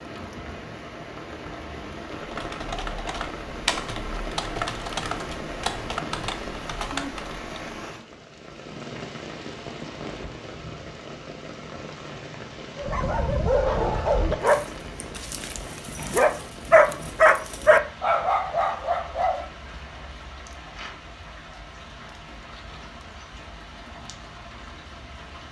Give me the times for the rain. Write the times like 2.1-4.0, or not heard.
0.0-25.4.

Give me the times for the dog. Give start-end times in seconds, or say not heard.
12.8-19.4.